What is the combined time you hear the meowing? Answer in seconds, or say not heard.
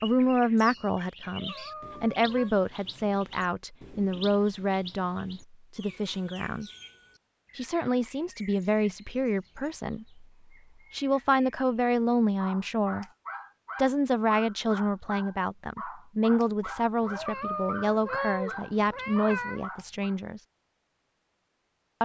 4 s.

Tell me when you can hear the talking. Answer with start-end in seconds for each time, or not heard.
0.0-6.7, 7.5-10.2, 10.9-13.1, 13.8-20.4.